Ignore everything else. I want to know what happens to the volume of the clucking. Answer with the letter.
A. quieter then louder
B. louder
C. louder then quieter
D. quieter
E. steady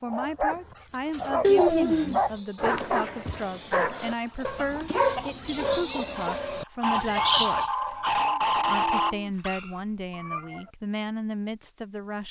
B.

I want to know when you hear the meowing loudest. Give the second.
2 s.